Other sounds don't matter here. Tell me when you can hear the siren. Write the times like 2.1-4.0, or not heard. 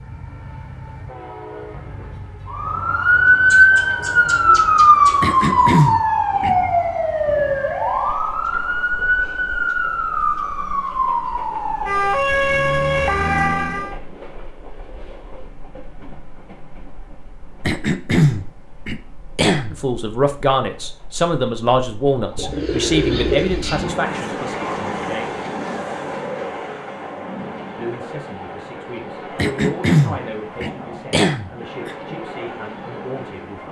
2.5-13.9.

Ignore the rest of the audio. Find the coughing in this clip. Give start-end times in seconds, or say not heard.
5.2-6.5, 17.6-19.8, 29.4-31.9.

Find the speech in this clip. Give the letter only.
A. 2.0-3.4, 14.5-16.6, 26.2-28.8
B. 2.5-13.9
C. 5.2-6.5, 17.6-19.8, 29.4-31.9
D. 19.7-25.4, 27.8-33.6
D.